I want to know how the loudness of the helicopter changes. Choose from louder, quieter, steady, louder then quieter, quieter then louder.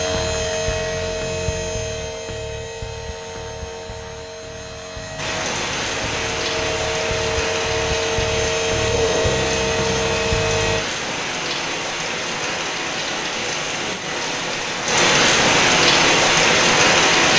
quieter then louder.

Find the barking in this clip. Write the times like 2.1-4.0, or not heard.
not heard.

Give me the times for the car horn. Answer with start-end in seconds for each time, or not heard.
not heard.